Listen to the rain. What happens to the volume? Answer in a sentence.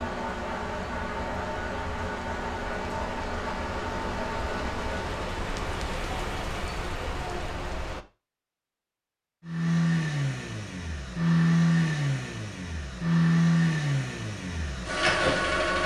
The loudness of the rain goes up.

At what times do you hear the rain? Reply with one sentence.
You can hear the rain from 0.1 to 8.1 s.